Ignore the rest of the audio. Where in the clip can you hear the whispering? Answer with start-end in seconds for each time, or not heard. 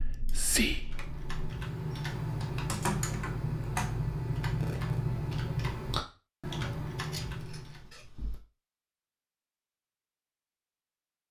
0.0-1.5.